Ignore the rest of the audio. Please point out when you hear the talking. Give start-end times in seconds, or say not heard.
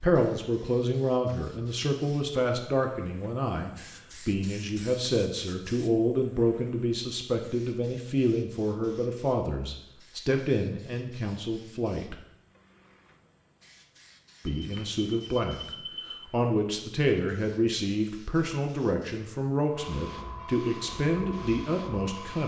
0.0-12.2, 14.4-15.7, 16.3-22.4.